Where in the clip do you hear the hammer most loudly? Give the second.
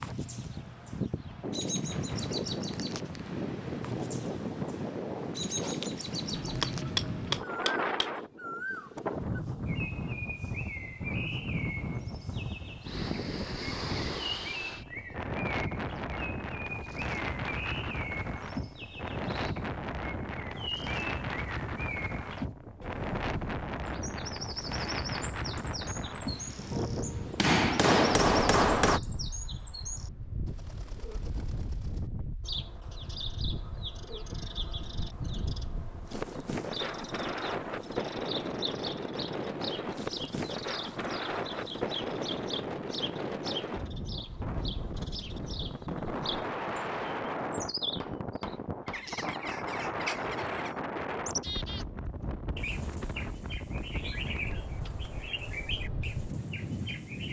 28 s.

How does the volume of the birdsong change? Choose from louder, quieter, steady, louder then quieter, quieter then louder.
steady.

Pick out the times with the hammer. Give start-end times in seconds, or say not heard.
5.5-8.1, 27.4-29.0, 47.5-49.4.